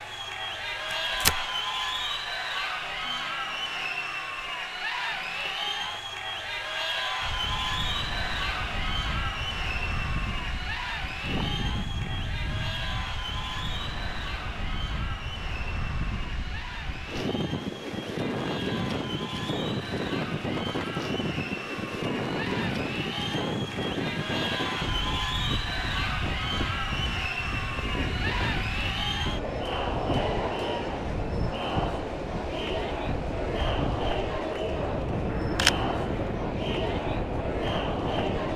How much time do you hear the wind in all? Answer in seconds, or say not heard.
31 s.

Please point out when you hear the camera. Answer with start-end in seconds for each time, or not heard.
0.9-1.5, 35.2-36.4.